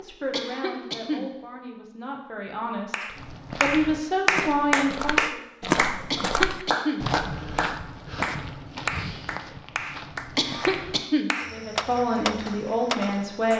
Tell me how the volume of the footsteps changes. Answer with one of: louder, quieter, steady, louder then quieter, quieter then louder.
louder then quieter.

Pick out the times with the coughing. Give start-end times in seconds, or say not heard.
0.3-1.3, 6.1-7.0, 10.3-11.3.